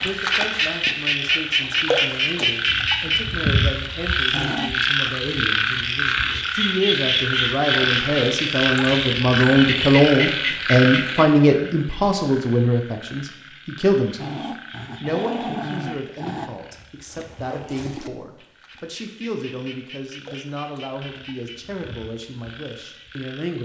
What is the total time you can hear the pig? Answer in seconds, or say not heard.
not heard.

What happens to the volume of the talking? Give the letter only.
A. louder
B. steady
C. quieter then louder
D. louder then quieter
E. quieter
D.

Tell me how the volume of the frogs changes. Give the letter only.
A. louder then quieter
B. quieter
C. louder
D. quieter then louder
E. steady
B.